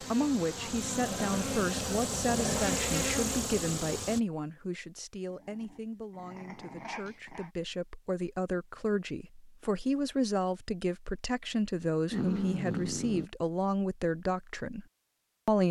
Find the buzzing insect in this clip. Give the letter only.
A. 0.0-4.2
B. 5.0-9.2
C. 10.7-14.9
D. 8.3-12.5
A.